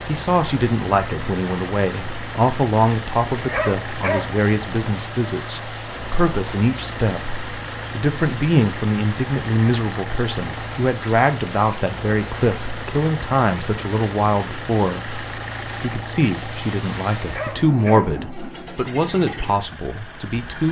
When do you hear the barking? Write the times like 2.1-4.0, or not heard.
3.2-4.3, 17.1-18.1.